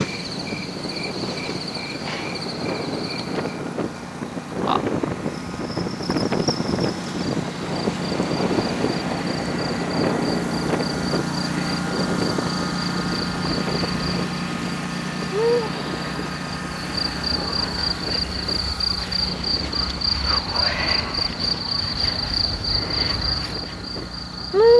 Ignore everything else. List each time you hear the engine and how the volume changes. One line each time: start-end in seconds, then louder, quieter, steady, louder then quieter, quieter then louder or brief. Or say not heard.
0.0-24.7 louder then quieter.